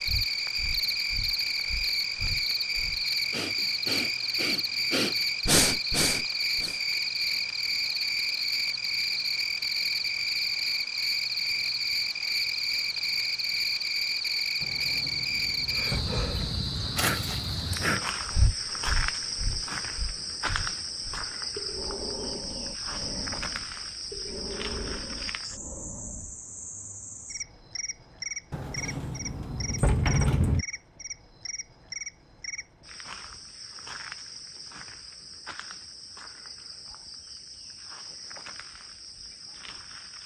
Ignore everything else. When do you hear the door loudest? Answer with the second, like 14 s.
30 s.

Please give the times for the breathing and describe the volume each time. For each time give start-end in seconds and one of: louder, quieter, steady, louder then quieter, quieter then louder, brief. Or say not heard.
0.0-6.8 louder
15.7-26.4 quieter.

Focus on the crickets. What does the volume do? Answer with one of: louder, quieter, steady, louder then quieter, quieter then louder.
quieter.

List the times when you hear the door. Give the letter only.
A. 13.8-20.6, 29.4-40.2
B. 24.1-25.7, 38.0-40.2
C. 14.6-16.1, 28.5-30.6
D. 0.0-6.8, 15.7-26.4
C.